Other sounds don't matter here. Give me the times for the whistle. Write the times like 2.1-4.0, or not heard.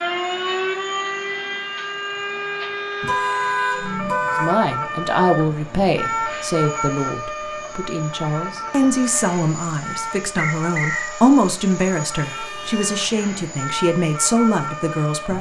10.3-11.2.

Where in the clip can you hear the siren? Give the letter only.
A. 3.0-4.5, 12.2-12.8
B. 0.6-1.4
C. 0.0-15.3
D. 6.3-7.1
C.